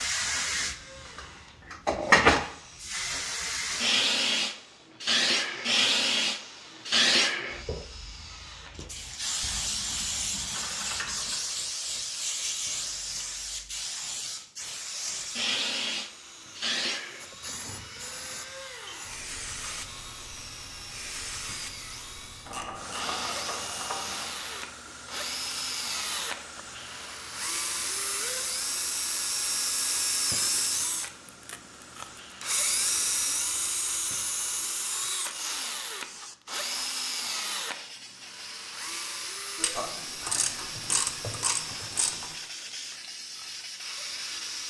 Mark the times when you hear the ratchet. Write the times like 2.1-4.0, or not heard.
9.4-11.4, 22.4-24.2, 39.5-42.3.